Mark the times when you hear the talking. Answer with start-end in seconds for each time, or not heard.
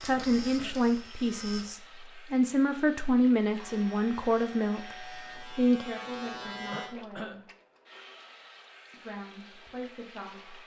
0.0-7.3, 8.9-10.6.